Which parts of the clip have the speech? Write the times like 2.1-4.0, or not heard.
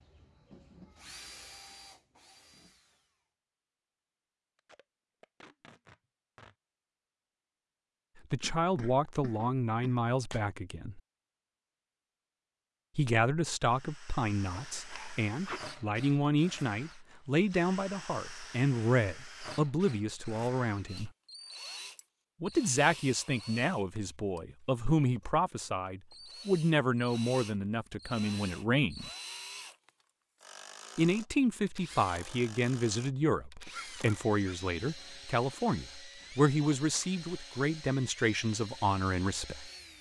8.3-11.0, 12.9-21.1, 22.4-29.1, 30.9-39.7.